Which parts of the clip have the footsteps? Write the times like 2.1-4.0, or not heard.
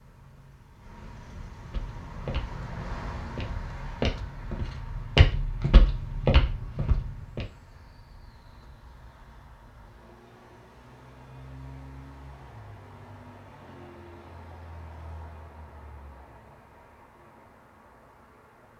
1.7-7.5.